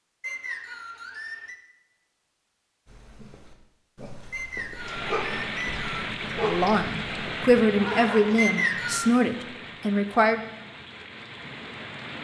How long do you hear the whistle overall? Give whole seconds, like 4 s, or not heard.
4 s.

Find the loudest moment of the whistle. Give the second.
9 s.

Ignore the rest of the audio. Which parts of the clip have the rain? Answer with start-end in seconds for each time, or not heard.
4.8-12.1.